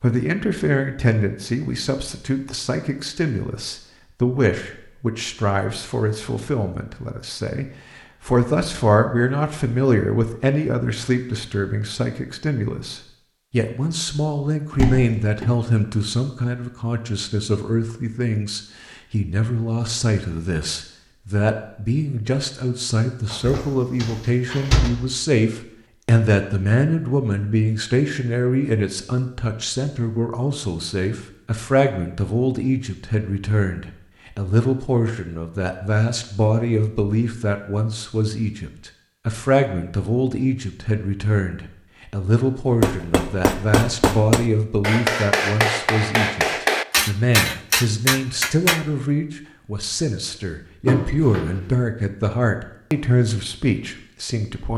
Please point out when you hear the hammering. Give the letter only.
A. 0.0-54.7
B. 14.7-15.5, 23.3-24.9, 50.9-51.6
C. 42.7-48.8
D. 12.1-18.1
C.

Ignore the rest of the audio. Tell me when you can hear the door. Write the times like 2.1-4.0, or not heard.
14.7-15.5, 23.3-24.9, 50.9-51.6.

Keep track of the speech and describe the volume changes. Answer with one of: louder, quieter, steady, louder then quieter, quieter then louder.
steady.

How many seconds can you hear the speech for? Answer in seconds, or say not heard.
55 s.